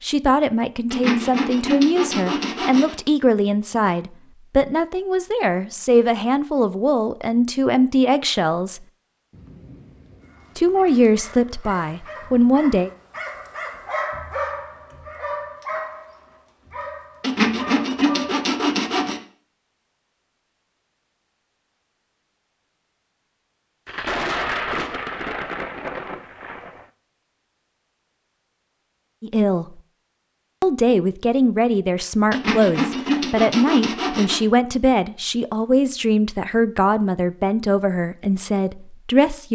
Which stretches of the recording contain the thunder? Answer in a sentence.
The thunder can be heard from 9.3 to 11.3 s and from 23.9 to 26.9 s.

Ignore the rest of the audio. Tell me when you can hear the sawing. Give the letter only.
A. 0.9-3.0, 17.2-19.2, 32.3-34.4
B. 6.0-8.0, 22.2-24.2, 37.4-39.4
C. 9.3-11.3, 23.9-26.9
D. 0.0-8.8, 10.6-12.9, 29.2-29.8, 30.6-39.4
A.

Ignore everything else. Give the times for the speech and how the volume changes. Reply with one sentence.
You can hear the speech from 0.0 to 8.8 s, at a steady volume; briefly from 10.6 to 12.9 s; briefly from 29.2 to 29.8 s; and from 30.6 to 39.4 s, at a steady volume.